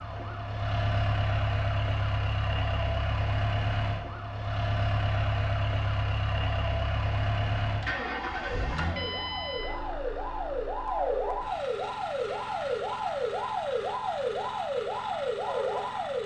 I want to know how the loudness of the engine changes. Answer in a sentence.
The volume of the engine goes down.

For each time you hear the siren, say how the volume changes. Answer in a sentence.
You can hear the siren from 0.0 to 16.2 s, getting louder.